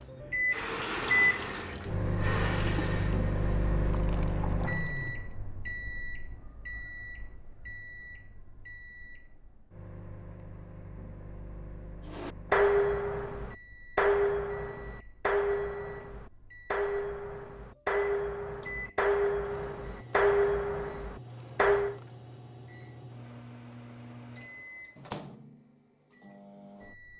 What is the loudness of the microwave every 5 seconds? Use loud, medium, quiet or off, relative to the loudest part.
loud, quiet, quiet, quiet, quiet, quiet.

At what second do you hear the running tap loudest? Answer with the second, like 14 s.
1 s.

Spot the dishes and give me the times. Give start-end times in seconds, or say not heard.
12.1-22.0.